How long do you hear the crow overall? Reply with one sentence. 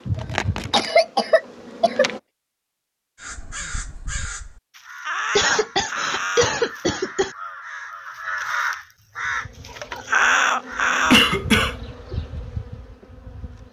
You can hear the crow for 8 seconds altogether.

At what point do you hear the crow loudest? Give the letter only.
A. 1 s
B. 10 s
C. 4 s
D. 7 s
B.